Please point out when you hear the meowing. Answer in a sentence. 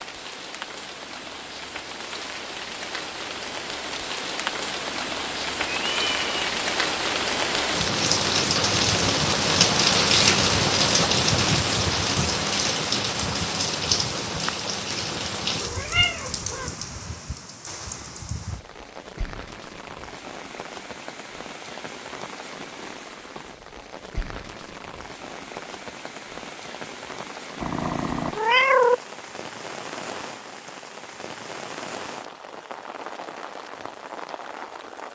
You can hear the meowing from 5.7 to 6.5 s, from 15.6 to 16.7 s and from 27.6 to 29.0 s.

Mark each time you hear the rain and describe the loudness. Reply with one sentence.
You can hear the rain from 0.0 to 35.0 s, getting louder then quieter.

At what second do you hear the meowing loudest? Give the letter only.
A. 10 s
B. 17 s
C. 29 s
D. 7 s
C.